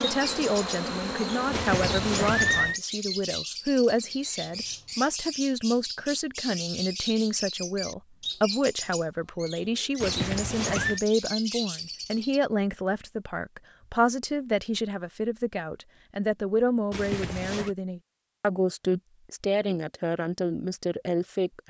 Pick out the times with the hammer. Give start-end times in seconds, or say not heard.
not heard.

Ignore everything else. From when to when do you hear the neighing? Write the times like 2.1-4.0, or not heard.
1.5-2.8, 10.0-11.0, 16.9-17.7.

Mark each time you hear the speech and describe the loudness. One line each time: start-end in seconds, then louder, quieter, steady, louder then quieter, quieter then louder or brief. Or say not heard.
0.0-21.6 steady.